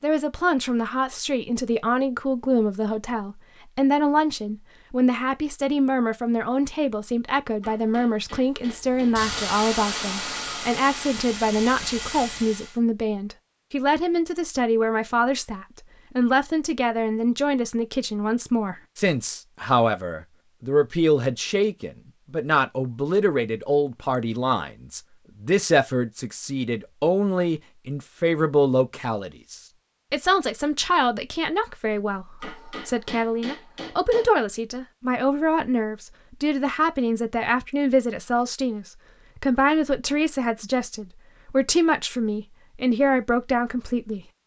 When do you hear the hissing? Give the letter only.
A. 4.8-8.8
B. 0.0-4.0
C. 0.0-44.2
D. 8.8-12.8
D.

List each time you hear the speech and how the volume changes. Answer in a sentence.
You can hear the speech from 0.0 to 44.2 s, at a steady volume.